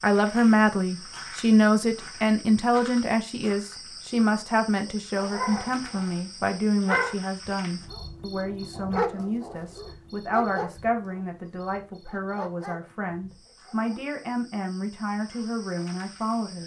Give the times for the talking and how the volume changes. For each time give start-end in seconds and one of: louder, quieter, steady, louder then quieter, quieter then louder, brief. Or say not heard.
0.0-16.6 quieter.